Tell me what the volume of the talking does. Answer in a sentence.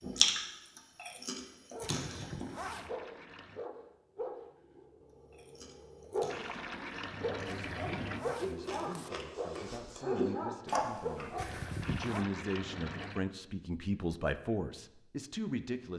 The volume of the talking goes up.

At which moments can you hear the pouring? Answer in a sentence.
The pouring can be heard from 2.6 to 3.6 s, from 6.3 to 8.2 s and from 11.8 to 13.2 s.